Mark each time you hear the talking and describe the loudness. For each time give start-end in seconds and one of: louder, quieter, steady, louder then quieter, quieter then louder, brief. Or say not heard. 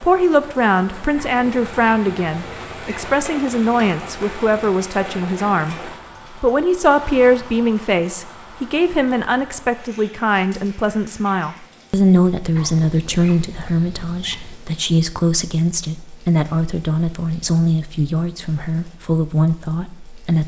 0.0-20.4 steady.